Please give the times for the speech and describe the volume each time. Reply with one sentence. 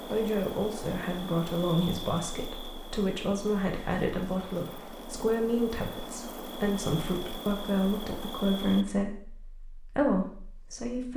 The speech can be heard from 0.0 to 11.1 s, at a steady volume.